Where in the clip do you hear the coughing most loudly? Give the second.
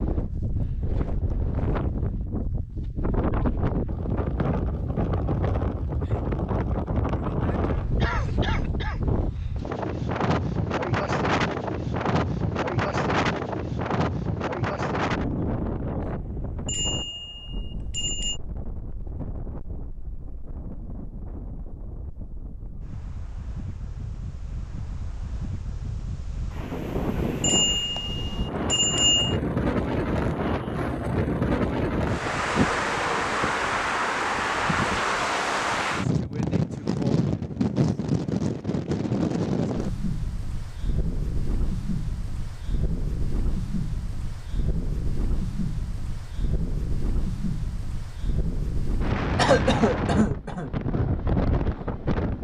50 s.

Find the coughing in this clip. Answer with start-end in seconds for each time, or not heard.
8.0-9.5, 49.4-50.7.